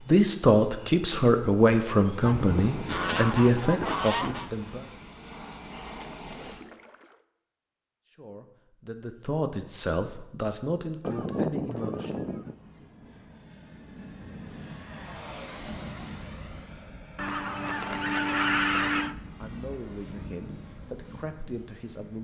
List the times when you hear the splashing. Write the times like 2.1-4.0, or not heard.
6.0-7.2.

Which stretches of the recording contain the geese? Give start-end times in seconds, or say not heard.
2.2-4.5, 11.0-12.6, 17.1-19.1.